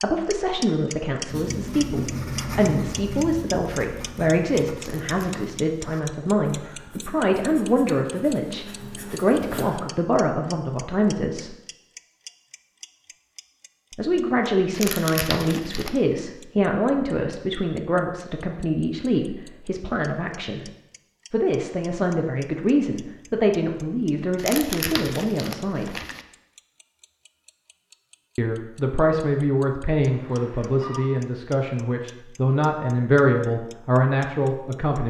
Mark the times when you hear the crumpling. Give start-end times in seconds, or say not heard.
4.8-5.5, 14.7-16.0, 24.4-26.2.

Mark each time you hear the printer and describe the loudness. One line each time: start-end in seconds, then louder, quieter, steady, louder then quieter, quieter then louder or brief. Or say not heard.
not heard.